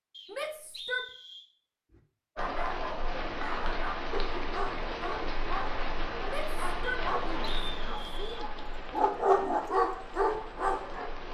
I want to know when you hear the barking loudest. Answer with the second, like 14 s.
9 s.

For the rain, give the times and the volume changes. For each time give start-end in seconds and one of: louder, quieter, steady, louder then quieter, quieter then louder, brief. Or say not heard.
2.4-11.3 quieter.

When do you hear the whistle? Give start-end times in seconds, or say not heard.
0.1-1.4, 6.8-8.4.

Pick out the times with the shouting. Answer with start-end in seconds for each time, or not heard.
0.3-1.1, 6.2-8.5.